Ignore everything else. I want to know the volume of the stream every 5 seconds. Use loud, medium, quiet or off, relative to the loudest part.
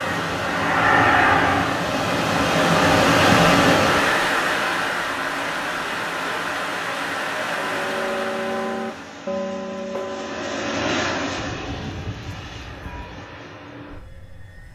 loud, medium, off.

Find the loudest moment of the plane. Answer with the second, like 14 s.
1 s.